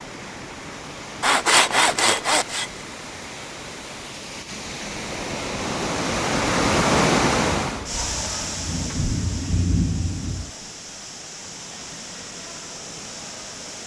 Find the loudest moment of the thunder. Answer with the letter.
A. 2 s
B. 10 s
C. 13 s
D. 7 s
B.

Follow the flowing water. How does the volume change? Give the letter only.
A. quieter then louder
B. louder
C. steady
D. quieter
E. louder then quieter
E.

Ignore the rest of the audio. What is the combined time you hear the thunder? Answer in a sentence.
You can hear the thunder for 3 seconds altogether.